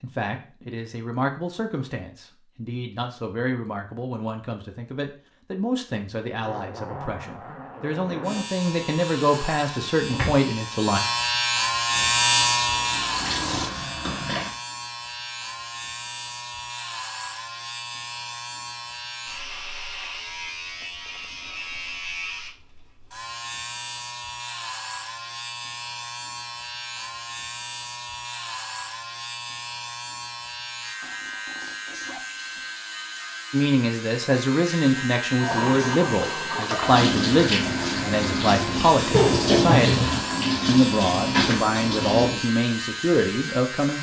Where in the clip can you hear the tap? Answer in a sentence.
The tap can be heard from 11.8 to 14.5 s and from 35.4 to 42.4 s.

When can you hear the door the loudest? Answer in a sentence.
The volume of the door peaks at 40 seconds.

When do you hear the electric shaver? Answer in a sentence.
The electric shaver can be heard from 8.2 to 43.9 s.